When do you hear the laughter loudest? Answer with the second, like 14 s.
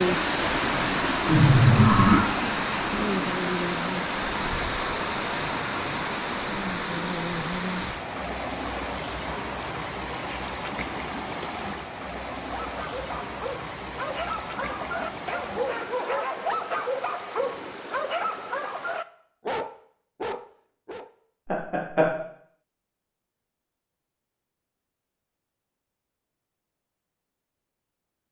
2 s.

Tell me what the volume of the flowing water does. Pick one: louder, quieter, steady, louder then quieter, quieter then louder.
quieter.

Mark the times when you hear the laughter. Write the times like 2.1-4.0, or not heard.
1.2-2.2, 21.5-22.1.